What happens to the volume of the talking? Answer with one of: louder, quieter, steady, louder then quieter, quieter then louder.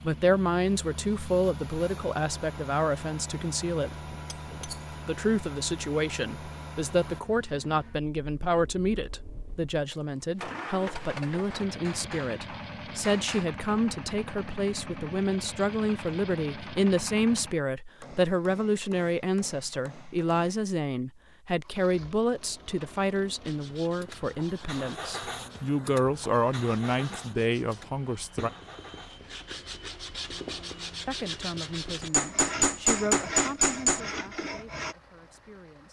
quieter.